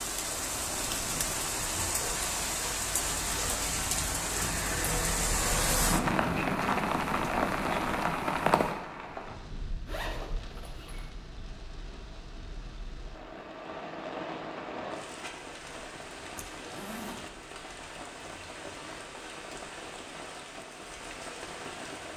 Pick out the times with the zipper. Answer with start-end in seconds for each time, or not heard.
2.0-3.6, 9.8-11.1, 16.4-17.4.